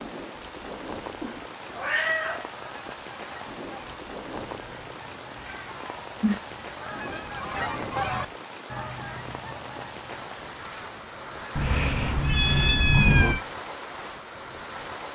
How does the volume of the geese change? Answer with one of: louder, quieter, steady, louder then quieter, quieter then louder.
louder then quieter.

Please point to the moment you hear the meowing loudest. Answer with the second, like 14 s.
13 s.